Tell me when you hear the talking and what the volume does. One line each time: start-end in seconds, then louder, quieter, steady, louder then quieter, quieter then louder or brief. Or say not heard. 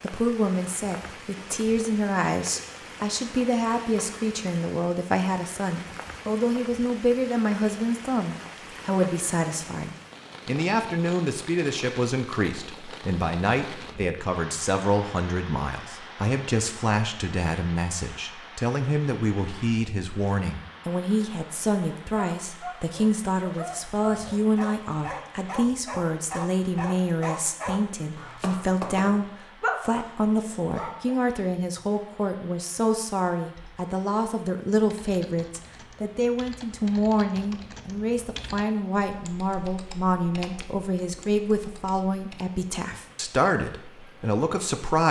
0.0-45.0 steady.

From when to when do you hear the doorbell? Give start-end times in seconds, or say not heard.
not heard.